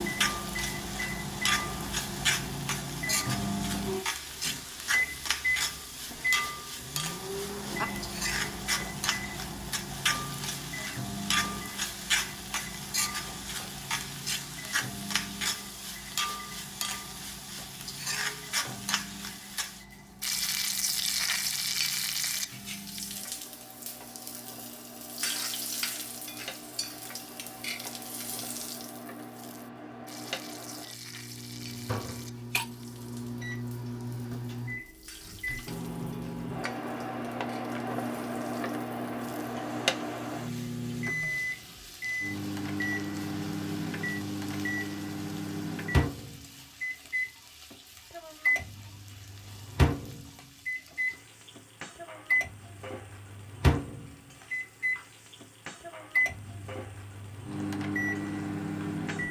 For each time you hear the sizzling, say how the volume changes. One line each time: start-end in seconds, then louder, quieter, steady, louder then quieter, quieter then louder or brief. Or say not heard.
0.0-59.2 quieter.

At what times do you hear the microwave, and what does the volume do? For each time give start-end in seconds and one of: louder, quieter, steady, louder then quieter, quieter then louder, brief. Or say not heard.
0.0-59.2 quieter then louder.